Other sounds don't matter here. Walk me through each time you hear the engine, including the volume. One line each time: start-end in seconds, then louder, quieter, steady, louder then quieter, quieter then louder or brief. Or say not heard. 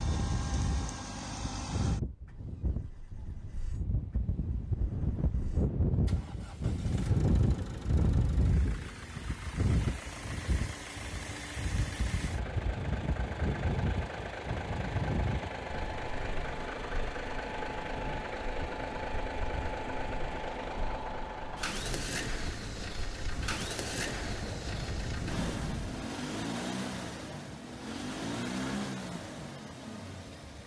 0.0-30.6 louder.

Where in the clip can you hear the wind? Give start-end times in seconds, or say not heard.
0.0-26.1.